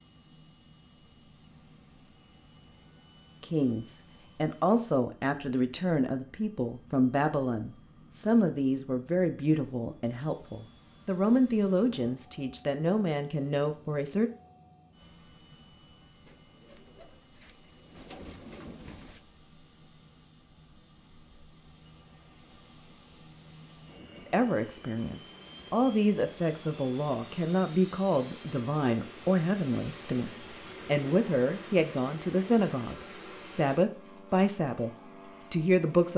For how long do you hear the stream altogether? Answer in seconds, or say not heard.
not heard.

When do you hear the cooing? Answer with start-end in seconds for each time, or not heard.
16.2-19.2.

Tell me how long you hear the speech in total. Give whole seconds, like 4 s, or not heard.
23 s.